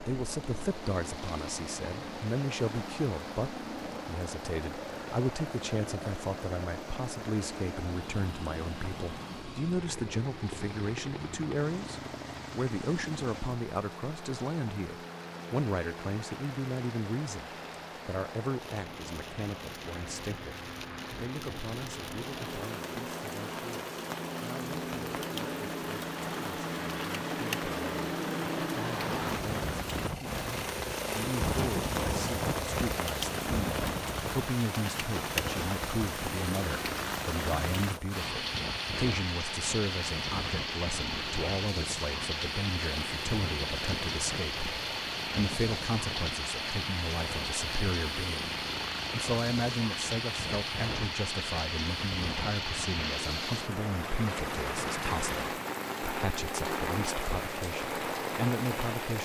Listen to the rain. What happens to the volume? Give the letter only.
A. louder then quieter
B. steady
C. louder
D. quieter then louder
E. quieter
C.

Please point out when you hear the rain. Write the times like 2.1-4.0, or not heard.
0.0-59.1.